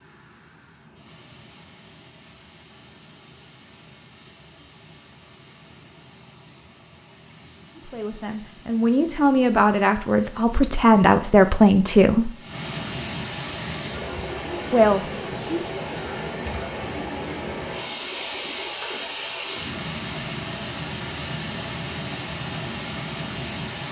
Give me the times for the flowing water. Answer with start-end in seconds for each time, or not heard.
0.0-23.8.